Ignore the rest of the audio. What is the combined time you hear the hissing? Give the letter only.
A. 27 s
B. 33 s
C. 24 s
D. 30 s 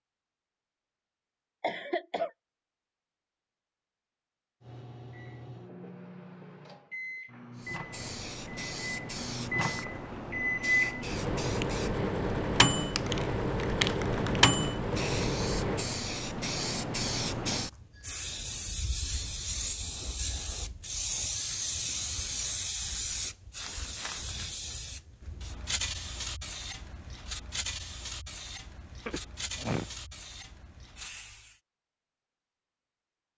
C.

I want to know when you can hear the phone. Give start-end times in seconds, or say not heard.
not heard.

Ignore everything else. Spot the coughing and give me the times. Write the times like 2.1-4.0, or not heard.
1.6-2.3, 29.1-29.9.